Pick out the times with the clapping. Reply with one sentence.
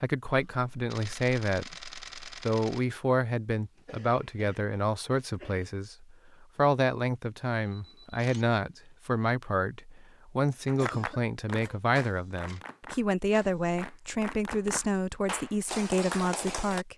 You can hear the clapping from 10.7 to 16.9 s.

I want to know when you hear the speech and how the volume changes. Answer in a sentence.
The speech can be heard from 0.0 to 16.9 s, at a steady volume.